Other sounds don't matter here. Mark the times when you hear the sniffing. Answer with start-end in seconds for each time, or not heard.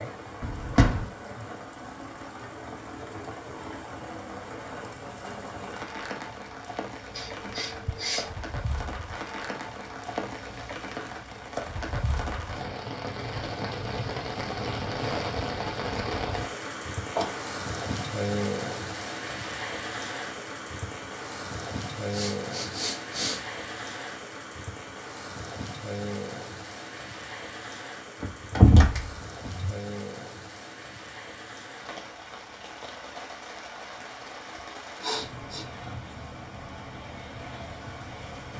7.1-8.3, 21.9-23.4, 34.5-36.1.